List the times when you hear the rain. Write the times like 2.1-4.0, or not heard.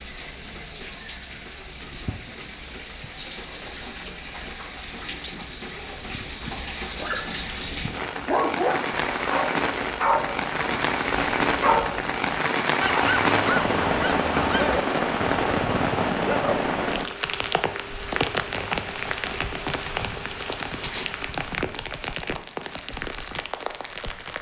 0.0-24.3.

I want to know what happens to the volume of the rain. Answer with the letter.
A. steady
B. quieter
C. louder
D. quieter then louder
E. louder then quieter
E.